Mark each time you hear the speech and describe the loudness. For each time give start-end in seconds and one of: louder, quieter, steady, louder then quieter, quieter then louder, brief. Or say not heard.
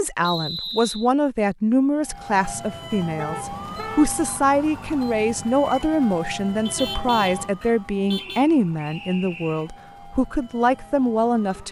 0.0-11.6 steady.